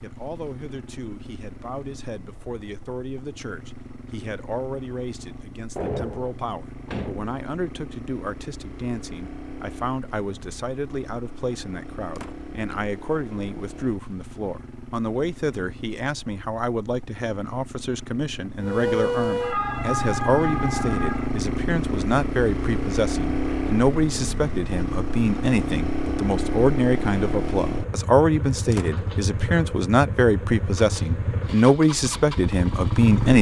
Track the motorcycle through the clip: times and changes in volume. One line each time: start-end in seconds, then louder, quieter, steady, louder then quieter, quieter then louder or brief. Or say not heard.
0.0-33.3 louder.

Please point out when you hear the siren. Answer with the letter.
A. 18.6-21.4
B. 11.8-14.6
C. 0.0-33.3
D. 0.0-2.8
A.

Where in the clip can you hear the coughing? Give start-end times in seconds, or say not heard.
not heard.